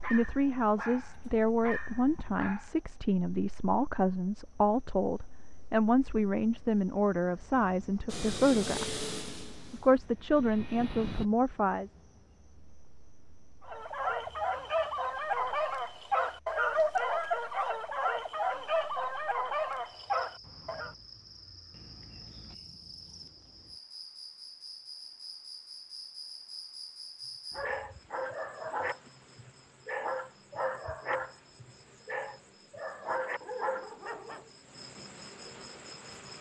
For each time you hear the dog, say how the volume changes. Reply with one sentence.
The dog can be heard briefly from 0.0 to 2.8 s; from 13.7 to 20.9 s, at a steady volume; and from 27.6 to 34.5 s, at a steady volume.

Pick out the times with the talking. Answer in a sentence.
You can hear the talking from 0.0 to 9.1 s and from 9.7 to 11.9 s.